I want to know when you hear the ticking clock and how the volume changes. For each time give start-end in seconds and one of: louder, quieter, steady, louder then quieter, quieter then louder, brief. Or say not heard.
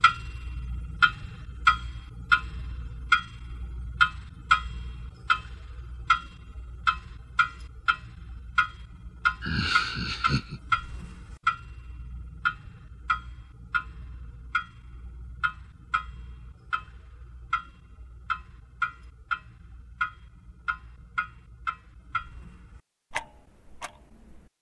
0.0-24.4 quieter.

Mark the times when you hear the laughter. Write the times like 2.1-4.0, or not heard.
9.4-10.6.